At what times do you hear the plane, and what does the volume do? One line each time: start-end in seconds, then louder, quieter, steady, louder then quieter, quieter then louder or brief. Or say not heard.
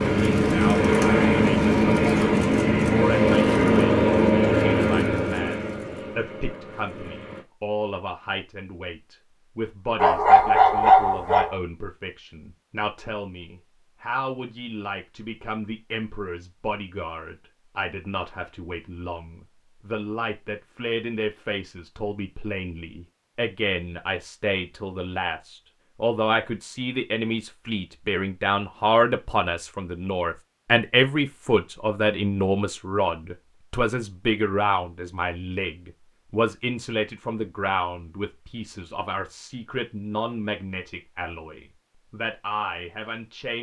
0.0-7.5 quieter.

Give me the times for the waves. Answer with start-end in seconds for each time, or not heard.
not heard.